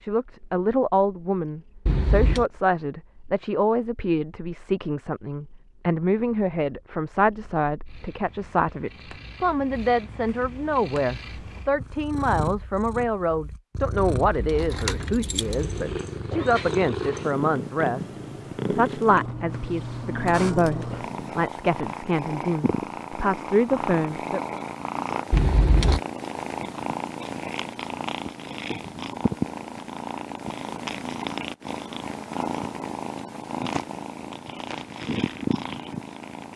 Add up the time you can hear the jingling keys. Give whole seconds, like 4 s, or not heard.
3 s.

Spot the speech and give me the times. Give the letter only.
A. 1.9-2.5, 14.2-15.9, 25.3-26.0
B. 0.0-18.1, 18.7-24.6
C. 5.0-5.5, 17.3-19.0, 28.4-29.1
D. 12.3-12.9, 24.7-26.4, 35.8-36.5
B.